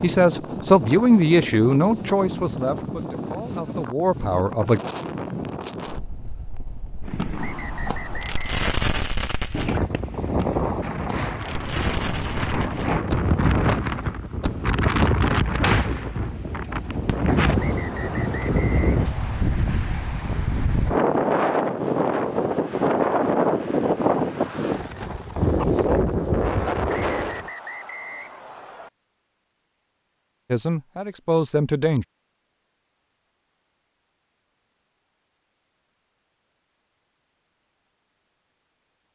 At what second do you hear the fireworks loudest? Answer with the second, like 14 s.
9 s.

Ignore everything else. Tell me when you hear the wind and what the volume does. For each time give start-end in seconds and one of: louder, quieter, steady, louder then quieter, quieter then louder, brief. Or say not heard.
0.0-27.5 louder.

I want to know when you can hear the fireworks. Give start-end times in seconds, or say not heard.
7.0-16.2.